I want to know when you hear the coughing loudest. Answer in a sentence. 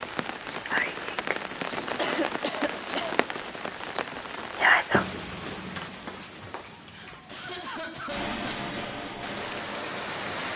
The volume of the coughing peaks at 2 seconds.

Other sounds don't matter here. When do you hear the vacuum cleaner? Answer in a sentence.
You can hear the vacuum cleaner from 8.1 to 10.2 s.